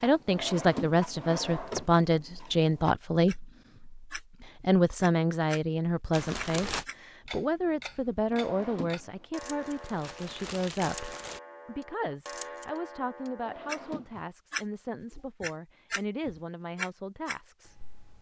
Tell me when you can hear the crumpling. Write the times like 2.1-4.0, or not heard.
6.1-6.8, 9.4-11.4.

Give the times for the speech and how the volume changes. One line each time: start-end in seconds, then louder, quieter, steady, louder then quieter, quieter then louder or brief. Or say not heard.
0.0-17.9 quieter.